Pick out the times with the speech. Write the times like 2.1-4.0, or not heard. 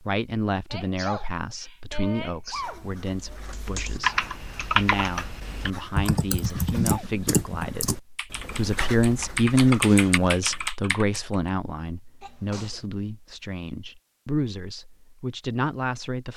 0.0-16.3.